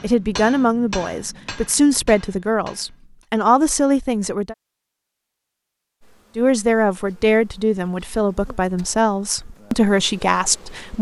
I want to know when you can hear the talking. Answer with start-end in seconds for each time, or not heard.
0.0-4.5, 6.3-10.9.